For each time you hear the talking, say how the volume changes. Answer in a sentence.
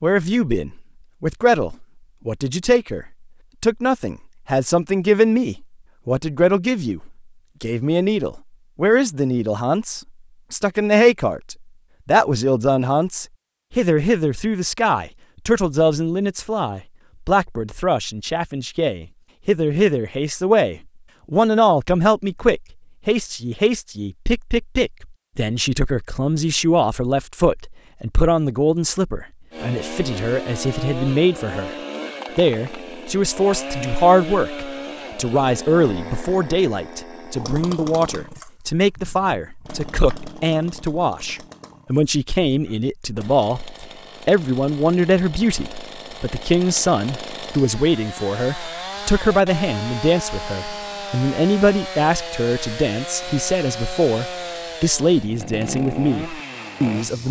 You can hear the talking from 0.0 to 31.8 s, at a steady volume; and from 32.4 to 57.2 s, at a steady volume.